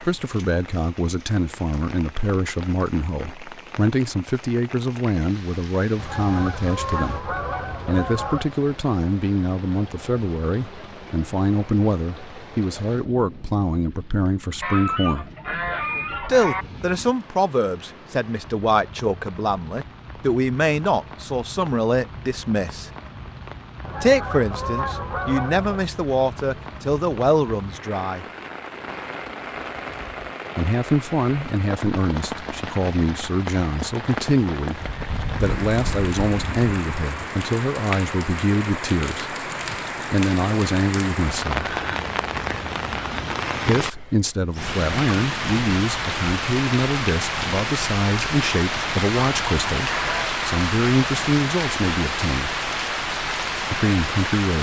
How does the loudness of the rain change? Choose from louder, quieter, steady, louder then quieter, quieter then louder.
louder.